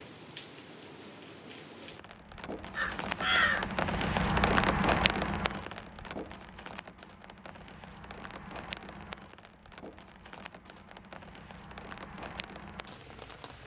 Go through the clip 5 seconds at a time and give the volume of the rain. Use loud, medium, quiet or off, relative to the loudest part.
loud, medium, quiet.